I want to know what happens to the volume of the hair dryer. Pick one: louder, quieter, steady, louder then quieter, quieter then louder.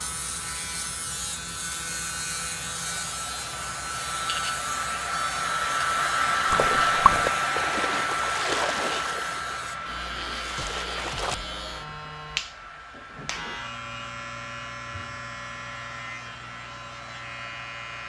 louder then quieter.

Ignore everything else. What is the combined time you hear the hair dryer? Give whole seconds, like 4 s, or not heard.
18 s.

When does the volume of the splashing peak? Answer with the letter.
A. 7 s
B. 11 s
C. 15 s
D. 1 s
A.